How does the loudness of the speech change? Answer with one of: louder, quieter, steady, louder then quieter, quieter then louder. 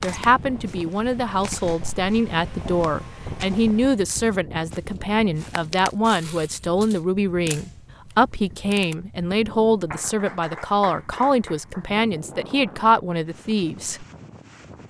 steady.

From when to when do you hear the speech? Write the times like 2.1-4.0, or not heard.
0.0-14.1.